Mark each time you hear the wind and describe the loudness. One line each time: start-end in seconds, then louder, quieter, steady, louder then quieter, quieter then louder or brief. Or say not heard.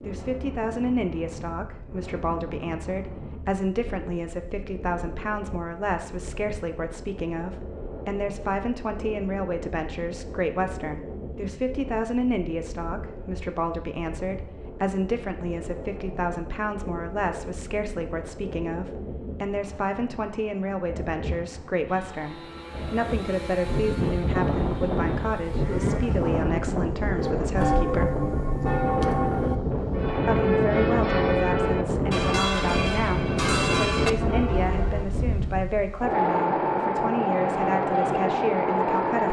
0.0-39.2 louder.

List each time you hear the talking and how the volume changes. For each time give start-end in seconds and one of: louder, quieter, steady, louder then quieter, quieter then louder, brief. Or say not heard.
0.0-28.1 steady
30.2-39.2 steady.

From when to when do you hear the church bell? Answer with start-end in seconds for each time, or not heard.
27.1-35.1.